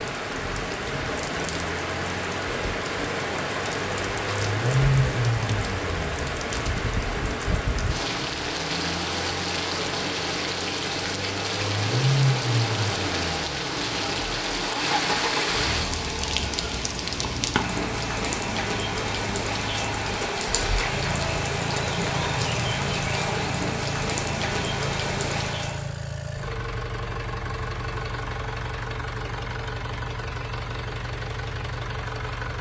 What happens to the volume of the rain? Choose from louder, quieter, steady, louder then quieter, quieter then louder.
steady.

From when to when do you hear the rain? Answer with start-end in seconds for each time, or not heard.
0.0-25.9.